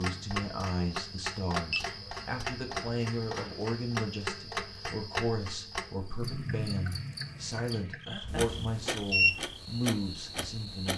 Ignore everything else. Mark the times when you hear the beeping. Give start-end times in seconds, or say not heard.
1.7-2.2, 8.2-9.3.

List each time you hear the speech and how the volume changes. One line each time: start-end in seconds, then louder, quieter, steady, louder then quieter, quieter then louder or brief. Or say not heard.
0.0-10.9 steady.